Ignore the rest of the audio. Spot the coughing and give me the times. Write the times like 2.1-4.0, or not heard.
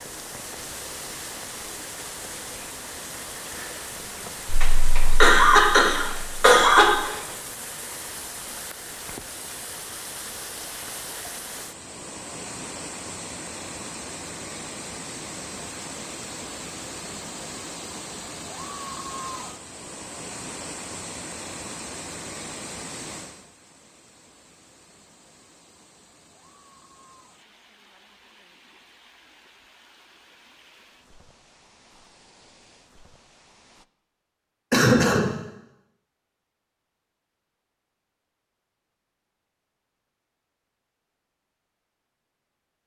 4.5-7.1, 34.7-35.4.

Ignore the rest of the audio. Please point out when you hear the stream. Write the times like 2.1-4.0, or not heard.
0.0-33.9.